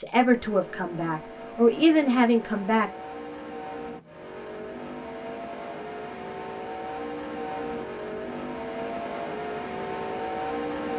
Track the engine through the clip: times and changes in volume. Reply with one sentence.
The engine can be heard from 0.0 to 10.9 s, getting louder.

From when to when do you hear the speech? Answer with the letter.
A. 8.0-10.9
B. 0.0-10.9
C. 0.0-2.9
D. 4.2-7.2
C.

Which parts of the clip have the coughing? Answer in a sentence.
You can't hear the coughing here.